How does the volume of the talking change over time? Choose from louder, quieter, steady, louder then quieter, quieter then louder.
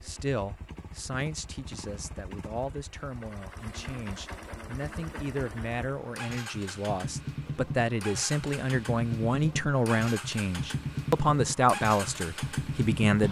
louder.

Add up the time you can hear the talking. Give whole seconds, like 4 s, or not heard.
13 s.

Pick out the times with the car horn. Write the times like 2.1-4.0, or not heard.
not heard.